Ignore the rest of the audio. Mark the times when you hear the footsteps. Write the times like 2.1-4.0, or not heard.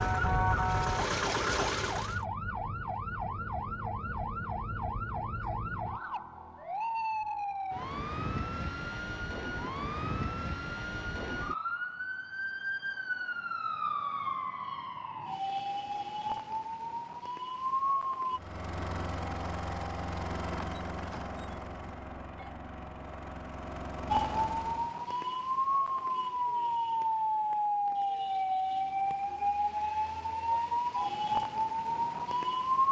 not heard.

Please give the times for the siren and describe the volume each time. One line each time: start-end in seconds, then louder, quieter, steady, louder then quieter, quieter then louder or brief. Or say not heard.
0.0-18.4 steady
24.1-32.8 steady.